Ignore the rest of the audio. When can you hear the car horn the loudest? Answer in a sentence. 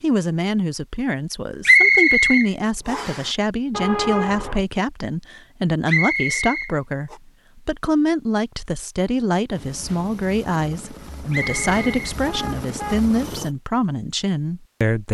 The volume of the car horn peaks at 4 seconds.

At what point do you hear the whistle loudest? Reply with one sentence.
The loudest moment of the whistle is at 2 seconds.